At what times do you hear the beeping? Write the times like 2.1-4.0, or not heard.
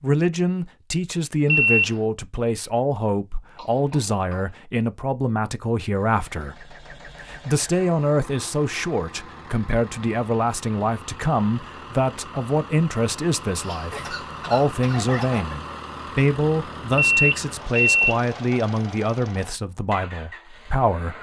1.4-1.9, 16.9-18.2.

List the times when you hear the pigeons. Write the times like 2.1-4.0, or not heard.
not heard.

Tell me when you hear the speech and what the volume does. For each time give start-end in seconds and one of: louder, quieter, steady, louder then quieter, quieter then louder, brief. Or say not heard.
0.0-21.1 steady.